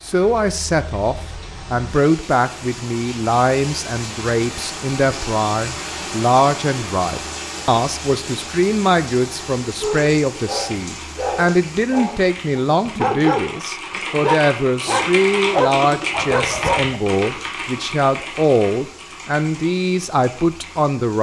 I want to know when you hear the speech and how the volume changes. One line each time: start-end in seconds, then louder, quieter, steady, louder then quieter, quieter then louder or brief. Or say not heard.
0.0-21.1 steady.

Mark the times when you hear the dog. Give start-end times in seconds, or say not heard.
9.7-17.0.